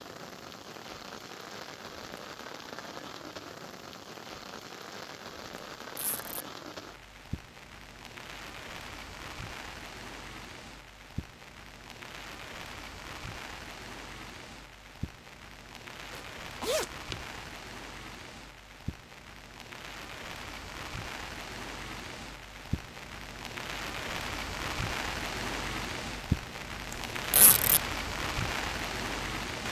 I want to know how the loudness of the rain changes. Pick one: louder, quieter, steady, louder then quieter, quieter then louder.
louder.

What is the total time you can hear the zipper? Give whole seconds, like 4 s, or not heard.
2 s.